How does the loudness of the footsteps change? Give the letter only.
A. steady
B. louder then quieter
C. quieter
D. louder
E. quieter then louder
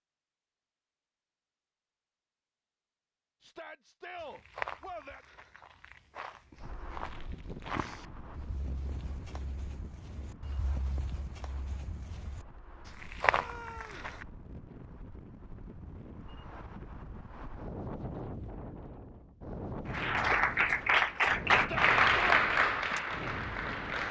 E.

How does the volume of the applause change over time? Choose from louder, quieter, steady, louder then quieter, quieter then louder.
quieter.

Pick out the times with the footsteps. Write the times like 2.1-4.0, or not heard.
4.2-14.2.